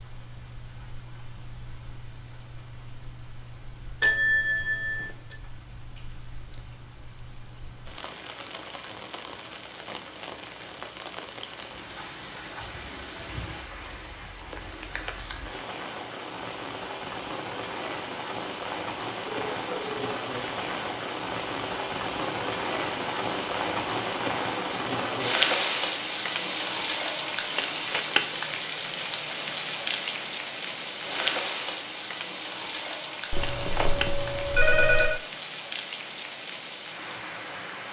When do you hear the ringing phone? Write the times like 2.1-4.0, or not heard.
4.0-5.3, 19.5-19.9, 33.3-35.2.